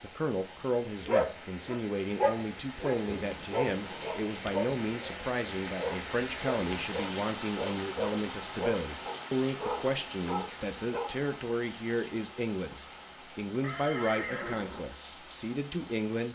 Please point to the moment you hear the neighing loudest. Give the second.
14 s.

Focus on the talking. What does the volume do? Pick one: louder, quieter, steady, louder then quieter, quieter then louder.
steady.